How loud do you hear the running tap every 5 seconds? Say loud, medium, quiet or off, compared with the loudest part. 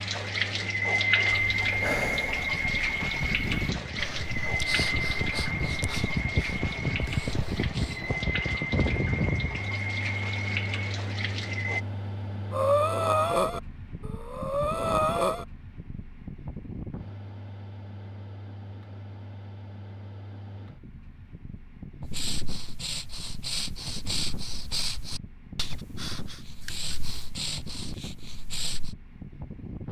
loud, medium, medium, off, off, off.